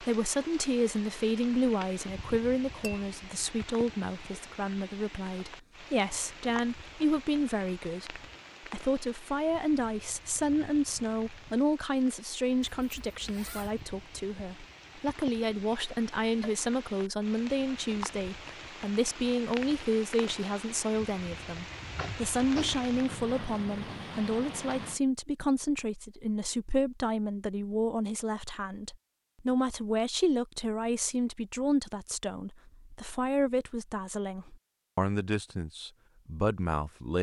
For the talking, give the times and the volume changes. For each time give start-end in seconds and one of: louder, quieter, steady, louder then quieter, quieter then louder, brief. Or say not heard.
0.0-37.1 steady.